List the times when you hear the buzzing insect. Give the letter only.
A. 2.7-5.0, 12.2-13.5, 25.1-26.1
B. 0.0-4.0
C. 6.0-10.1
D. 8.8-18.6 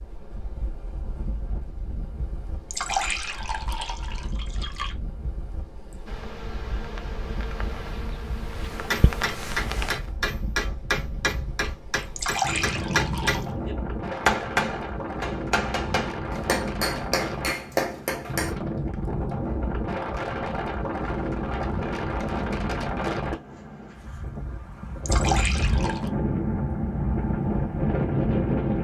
C.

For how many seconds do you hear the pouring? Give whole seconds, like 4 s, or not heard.
5 s.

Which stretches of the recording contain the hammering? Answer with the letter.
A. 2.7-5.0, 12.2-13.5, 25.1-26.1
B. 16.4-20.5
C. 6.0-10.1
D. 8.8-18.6
D.